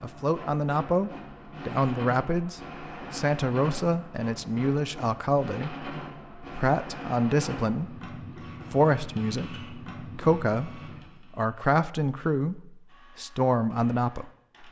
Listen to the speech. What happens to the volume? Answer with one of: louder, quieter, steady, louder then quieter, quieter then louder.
steady.